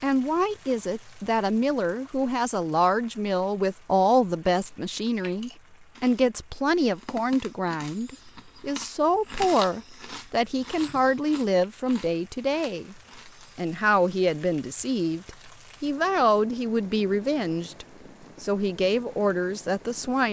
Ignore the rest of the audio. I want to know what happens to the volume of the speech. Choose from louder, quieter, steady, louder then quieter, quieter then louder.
steady.